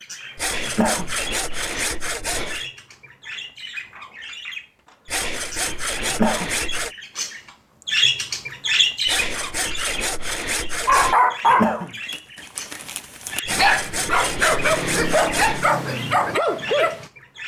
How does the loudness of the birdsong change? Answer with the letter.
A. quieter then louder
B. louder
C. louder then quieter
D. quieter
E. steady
C.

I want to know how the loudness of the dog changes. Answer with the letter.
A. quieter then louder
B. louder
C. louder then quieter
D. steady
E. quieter
A.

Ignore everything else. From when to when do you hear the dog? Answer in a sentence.
The dog can be heard from 10.8 to 17.1 s.